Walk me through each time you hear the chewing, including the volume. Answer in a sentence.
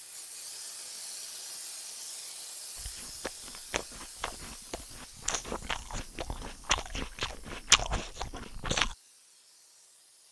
The chewing can be heard from 2.8 to 8.9 s, getting louder.